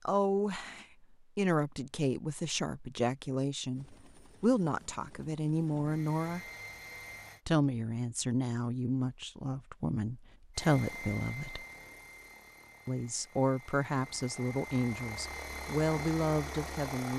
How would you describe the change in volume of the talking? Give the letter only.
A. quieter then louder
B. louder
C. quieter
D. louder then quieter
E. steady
E.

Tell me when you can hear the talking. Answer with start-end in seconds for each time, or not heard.
0.1-6.4, 7.5-11.7, 12.8-17.1.